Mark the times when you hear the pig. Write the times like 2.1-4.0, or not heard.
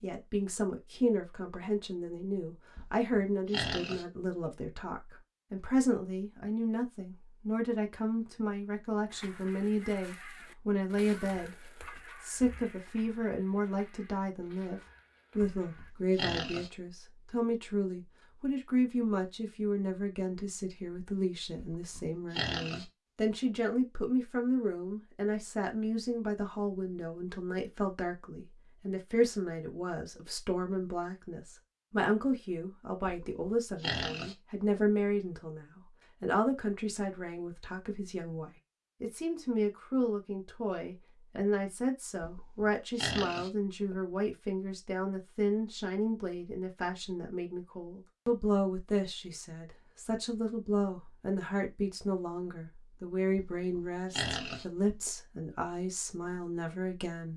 2.8-4.5, 15.6-16.7, 21.6-22.9, 33.0-34.8, 42.2-44.0, 53.4-55.1.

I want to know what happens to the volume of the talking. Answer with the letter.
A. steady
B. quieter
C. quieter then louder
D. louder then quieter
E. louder
A.